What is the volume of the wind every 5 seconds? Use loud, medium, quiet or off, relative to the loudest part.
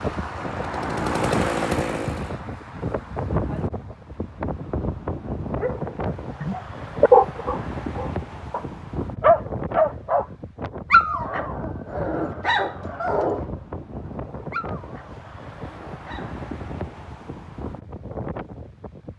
loud, loud, medium, medium.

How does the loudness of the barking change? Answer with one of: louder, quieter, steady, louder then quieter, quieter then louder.
quieter.